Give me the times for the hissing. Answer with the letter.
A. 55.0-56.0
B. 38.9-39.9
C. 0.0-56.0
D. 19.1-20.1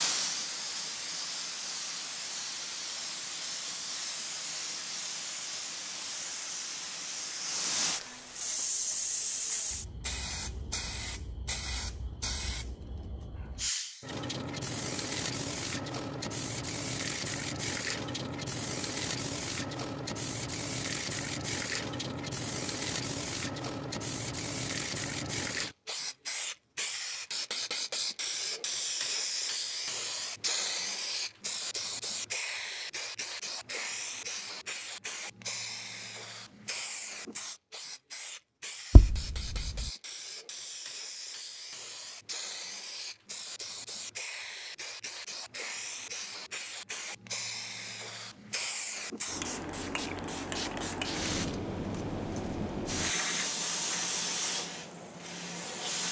C.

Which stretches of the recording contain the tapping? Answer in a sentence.
The tapping can be heard from 38.9 to 39.9 s.